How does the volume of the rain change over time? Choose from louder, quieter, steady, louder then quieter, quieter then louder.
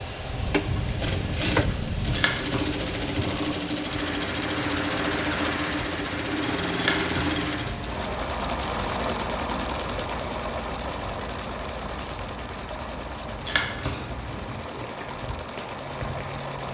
quieter.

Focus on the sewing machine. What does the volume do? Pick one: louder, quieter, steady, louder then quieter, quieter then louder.
quieter.